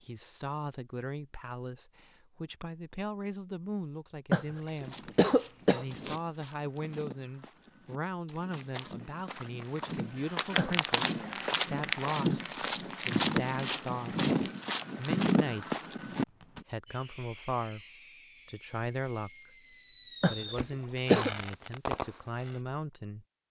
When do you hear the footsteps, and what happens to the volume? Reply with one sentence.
You can hear the footsteps from 4.8 to 16.6 s, getting louder.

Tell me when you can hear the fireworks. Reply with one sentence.
The fireworks can be heard from 16.4 to 22.6 s.